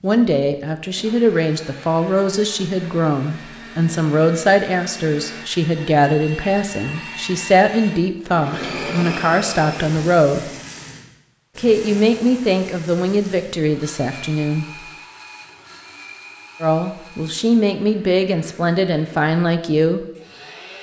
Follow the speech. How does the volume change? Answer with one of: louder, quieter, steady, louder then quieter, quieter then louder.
steady.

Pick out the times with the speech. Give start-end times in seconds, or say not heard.
0.0-10.5, 11.6-14.7, 16.6-20.1.